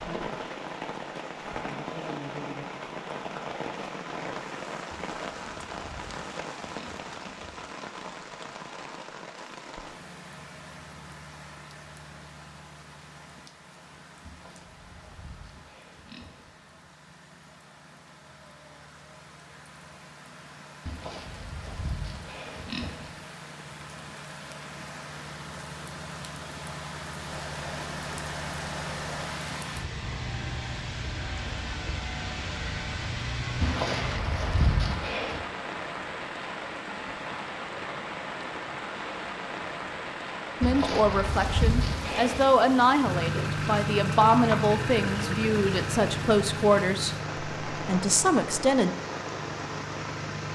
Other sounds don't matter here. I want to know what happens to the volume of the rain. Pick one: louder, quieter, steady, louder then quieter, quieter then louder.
quieter then louder.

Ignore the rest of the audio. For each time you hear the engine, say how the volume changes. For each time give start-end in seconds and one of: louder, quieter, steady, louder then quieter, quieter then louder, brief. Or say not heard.
27.3-34.2 louder
43.0-50.5 quieter.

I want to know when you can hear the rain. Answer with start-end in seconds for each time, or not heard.
0.0-50.5.